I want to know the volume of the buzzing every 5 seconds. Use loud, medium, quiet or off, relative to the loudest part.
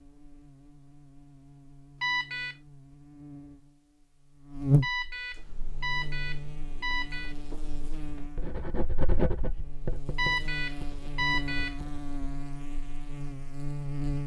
loud, medium, loud.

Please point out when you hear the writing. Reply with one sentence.
The writing can be heard from 5.3 to 12.1 s.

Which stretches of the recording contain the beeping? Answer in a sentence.
You can hear the beeping from 2.0 to 2.5 s, from 4.8 to 7.3 s and from 10.2 to 11.8 s.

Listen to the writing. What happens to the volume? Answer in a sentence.
The volume of the writing goes up, then down.